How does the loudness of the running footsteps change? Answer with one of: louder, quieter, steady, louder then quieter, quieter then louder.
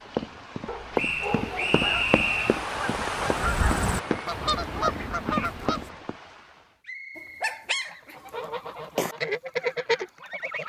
quieter then louder.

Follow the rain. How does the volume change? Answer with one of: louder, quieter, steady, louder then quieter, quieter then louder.
louder then quieter.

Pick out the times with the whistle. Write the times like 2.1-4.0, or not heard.
0.9-2.6, 6.8-8.4.